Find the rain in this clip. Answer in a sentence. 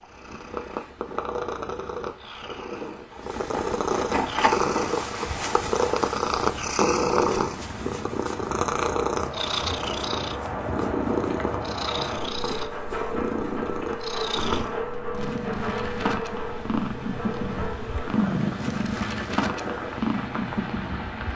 You can hear the rain from 4.2 to 21.3 s.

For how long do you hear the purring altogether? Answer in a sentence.
You can hear the purring for 21 seconds altogether.